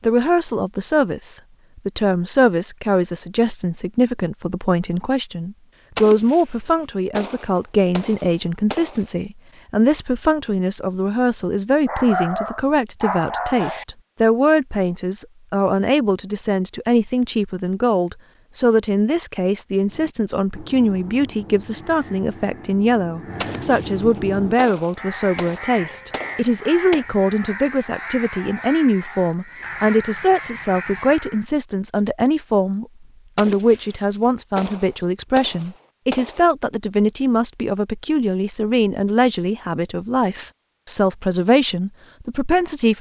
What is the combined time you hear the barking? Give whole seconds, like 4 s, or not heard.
2 s.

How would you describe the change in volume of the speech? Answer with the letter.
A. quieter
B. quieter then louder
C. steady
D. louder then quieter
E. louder
C.